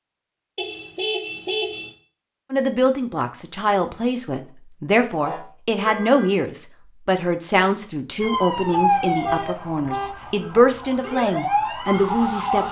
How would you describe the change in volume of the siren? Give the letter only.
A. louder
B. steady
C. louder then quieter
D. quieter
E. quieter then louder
E.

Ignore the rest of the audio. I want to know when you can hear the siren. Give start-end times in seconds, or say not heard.
8.2-12.6.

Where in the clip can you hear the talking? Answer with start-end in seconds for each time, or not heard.
2.5-12.6.